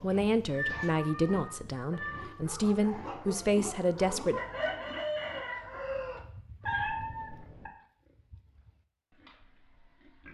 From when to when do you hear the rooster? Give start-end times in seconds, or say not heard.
4.3-6.2.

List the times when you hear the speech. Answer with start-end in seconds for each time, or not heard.
0.0-4.4.